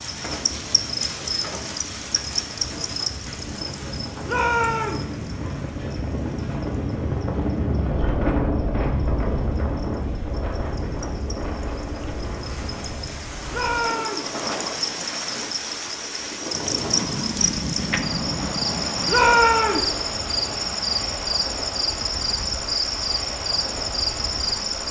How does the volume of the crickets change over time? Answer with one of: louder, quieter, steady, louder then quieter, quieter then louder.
quieter then louder.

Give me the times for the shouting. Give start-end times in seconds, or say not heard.
4.2-5.0, 13.5-14.3, 19.1-19.9.